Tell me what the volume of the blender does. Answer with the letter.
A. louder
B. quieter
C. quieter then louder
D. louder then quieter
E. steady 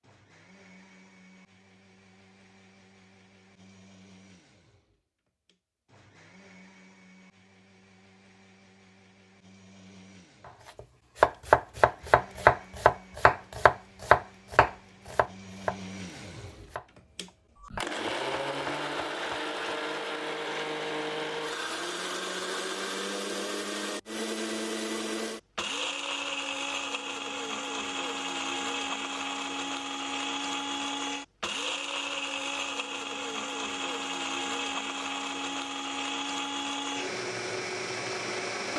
A.